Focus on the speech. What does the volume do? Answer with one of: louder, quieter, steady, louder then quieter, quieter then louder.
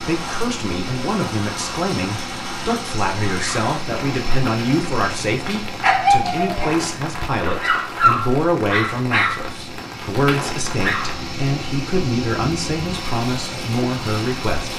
steady.